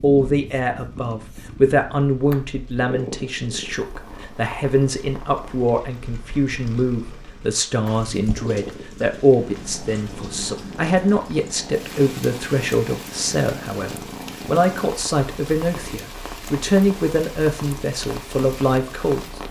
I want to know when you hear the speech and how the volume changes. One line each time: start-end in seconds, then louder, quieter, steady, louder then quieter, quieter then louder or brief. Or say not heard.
0.0-19.4 steady.